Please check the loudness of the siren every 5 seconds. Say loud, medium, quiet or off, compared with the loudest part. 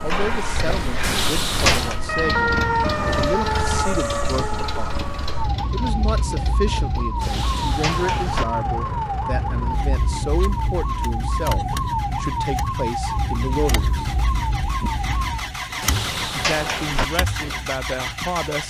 loud, loud, loud, medium.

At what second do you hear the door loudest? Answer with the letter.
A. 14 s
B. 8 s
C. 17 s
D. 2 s
D.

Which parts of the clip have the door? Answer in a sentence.
The door can be heard from 1.0 to 2.0 s, from 7.2 to 8.4 s and from 15.8 to 17.1 s.